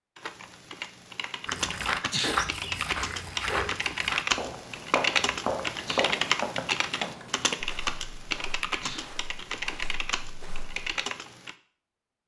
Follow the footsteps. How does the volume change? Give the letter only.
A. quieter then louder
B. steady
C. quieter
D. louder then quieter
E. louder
C.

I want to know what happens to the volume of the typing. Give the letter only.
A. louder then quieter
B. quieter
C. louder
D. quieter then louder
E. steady
A.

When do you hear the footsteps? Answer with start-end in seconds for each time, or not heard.
1.4-10.9.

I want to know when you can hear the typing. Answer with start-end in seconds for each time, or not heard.
0.1-11.6.